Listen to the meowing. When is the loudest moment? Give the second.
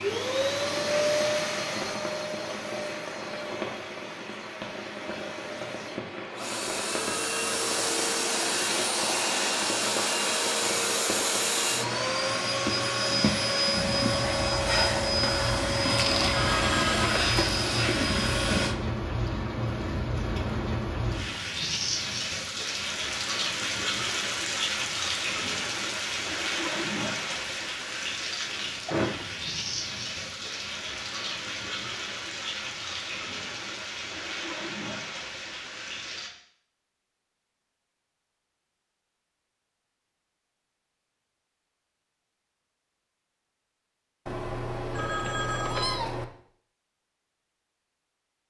46 s.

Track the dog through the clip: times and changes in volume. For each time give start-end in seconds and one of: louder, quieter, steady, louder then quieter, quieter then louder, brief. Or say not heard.
not heard.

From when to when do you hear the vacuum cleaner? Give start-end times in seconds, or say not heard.
0.0-18.8.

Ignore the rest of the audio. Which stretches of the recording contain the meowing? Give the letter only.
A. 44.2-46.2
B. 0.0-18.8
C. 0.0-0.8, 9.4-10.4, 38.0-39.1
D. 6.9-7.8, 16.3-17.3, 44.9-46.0
A.